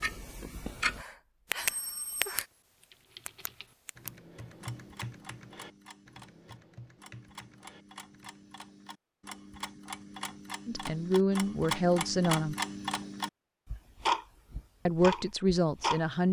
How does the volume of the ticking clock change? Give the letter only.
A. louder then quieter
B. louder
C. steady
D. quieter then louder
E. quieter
D.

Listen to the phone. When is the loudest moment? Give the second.
2 s.